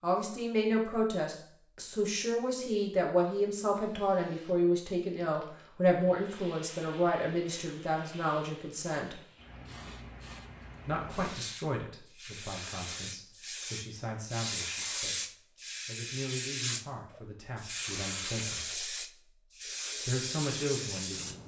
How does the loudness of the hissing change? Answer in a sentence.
The volume of the hissing goes up.